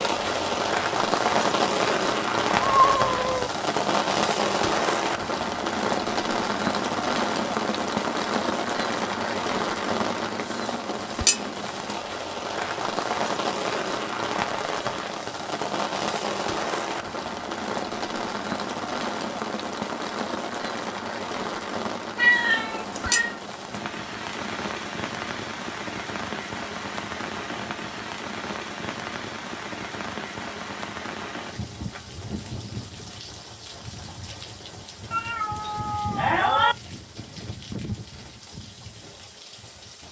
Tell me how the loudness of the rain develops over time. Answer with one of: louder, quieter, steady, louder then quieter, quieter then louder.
quieter.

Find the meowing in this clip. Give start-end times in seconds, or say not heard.
2.6-3.5, 22.1-23.4, 35.1-36.8.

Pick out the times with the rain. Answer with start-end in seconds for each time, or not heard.
0.0-40.0.